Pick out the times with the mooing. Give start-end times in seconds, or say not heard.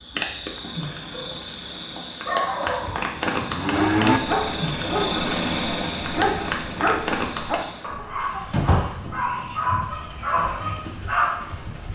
2.7-4.2.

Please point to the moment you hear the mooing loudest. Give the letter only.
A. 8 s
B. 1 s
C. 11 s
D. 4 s
D.